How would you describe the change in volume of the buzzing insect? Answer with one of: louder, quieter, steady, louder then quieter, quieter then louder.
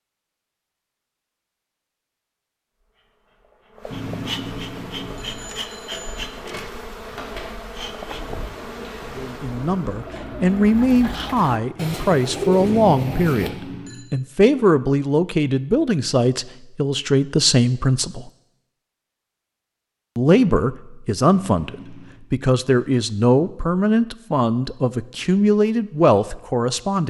steady.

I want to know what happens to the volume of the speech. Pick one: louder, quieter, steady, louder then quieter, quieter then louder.
steady.